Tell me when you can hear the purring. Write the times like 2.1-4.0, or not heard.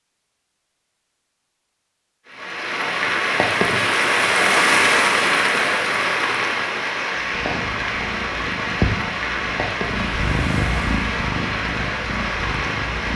7.2-13.1.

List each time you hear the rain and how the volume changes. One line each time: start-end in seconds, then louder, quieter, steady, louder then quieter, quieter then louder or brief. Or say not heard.
2.2-13.1 quieter.